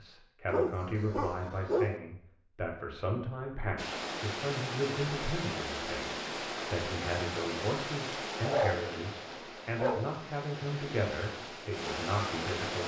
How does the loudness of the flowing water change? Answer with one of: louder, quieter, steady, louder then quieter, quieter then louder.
quieter then louder.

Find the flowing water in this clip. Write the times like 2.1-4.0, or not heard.
3.8-12.8.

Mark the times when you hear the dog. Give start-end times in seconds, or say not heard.
0.5-2.0, 8.4-10.2.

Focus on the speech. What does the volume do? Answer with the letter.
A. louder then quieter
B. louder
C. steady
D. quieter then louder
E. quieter
C.